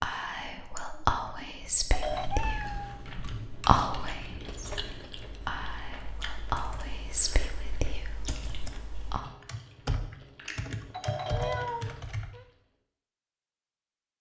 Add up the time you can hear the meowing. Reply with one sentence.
You can hear the meowing for 3 seconds altogether.